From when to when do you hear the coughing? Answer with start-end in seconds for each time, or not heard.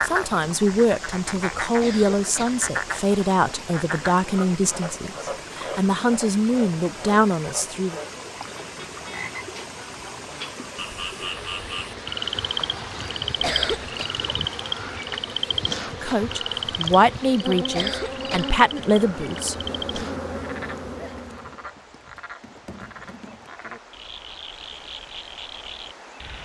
1.8-2.6, 13.4-14.1, 17.7-18.6.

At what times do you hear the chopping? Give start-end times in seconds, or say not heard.
not heard.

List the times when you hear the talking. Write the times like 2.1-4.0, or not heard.
0.0-8.0, 15.8-20.1.